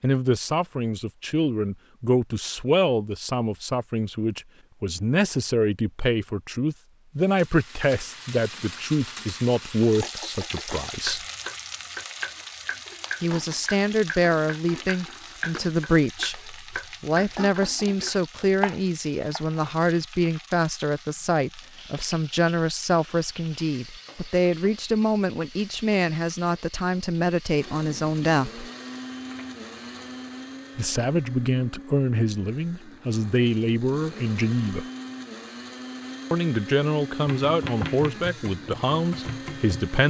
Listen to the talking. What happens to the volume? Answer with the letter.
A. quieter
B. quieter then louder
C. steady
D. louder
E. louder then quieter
C.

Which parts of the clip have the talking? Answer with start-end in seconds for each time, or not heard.
0.0-11.2, 13.2-28.6, 30.8-34.9, 36.3-40.0.